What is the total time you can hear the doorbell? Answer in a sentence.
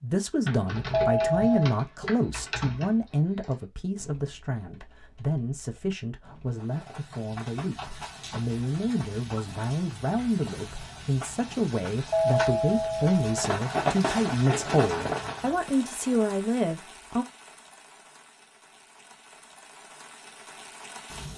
The doorbell can be heard for 2 seconds in total.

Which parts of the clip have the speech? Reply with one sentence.
You can hear the speech from 0.0 to 17.2 s.